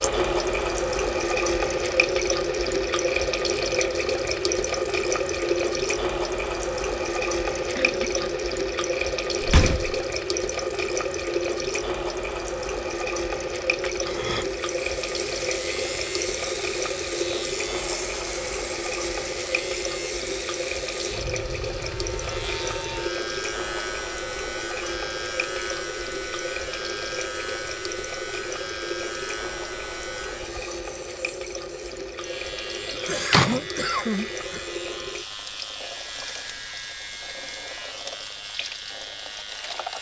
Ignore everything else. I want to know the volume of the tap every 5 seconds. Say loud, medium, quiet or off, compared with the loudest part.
loud, loud, loud, medium, medium, medium, medium, quiet.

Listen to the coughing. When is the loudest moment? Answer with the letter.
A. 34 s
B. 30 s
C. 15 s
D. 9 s
A.